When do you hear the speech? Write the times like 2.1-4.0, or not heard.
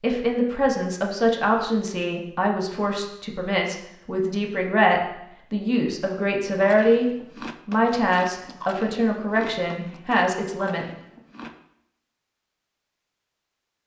0.0-10.8.